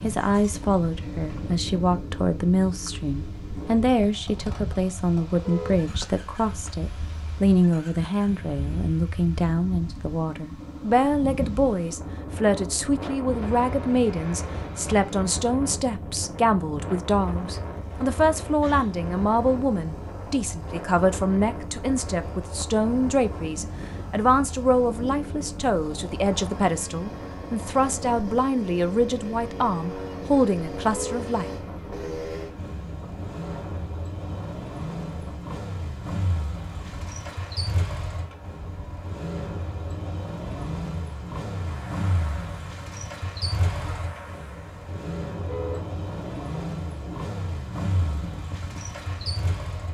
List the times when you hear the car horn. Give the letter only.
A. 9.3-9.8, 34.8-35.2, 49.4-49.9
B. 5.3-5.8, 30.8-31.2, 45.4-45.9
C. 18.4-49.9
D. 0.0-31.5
B.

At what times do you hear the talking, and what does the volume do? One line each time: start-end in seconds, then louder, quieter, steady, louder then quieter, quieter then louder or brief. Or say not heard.
0.0-31.5 steady.